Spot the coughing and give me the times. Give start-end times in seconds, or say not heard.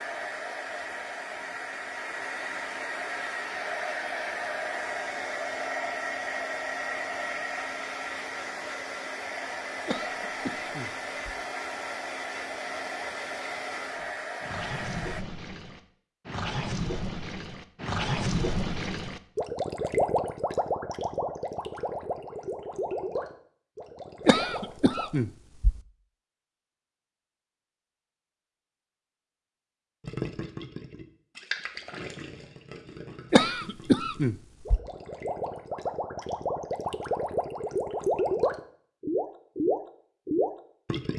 9.8-11.3, 24.2-25.8, 33.3-34.8.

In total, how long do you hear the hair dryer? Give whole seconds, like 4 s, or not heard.
15 s.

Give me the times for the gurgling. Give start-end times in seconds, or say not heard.
13.9-25.1, 30.0-41.1.